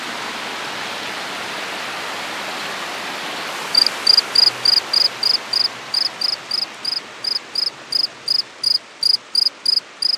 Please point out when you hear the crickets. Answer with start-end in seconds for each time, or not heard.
3.7-10.1.